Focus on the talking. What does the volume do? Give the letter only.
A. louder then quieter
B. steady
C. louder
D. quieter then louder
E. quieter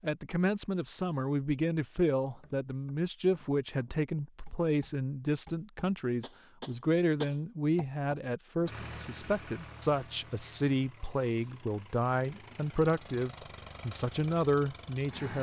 B.